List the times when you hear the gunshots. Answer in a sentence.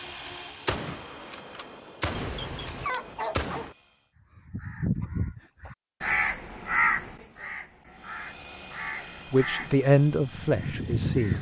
You can hear the gunshots from 0.7 to 3.8 s.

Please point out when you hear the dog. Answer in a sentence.
You can hear the dog from 2.1 to 3.7 s.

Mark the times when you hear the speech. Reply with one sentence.
You can hear the speech from 9.3 to 11.3 s.